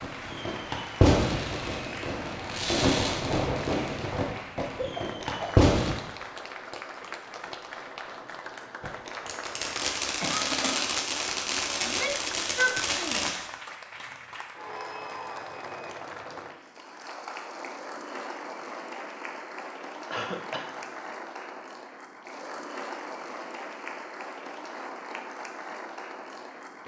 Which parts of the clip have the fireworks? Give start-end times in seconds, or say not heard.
0.0-6.0, 8.8-13.3.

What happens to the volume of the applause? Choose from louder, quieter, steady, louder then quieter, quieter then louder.
steady.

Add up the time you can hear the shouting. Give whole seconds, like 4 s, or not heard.
2 s.